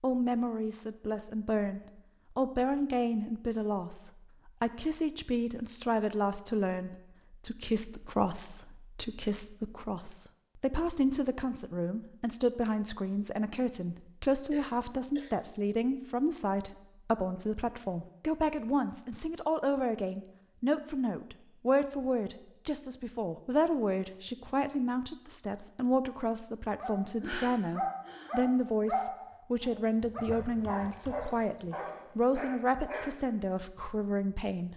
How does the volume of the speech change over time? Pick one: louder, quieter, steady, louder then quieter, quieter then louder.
steady.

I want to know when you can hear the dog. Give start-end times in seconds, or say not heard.
26.8-33.2.